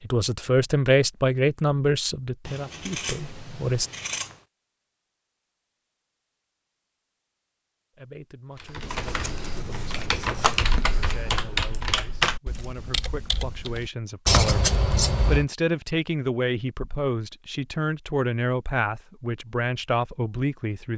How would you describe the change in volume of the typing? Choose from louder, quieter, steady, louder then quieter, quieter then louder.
louder then quieter.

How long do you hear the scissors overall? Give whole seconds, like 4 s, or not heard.
5 s.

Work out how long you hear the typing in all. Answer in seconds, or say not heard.
6 s.